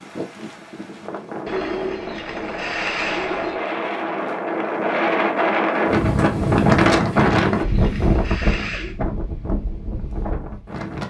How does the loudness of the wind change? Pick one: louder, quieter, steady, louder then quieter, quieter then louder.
louder then quieter.